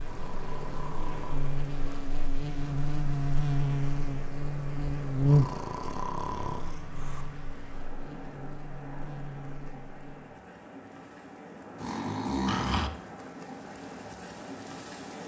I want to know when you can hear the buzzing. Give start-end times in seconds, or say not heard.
0.0-10.3.